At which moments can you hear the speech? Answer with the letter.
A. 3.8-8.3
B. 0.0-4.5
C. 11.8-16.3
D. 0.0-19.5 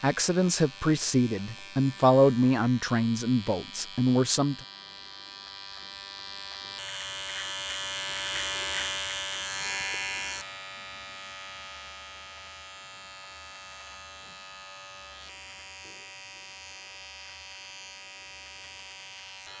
B.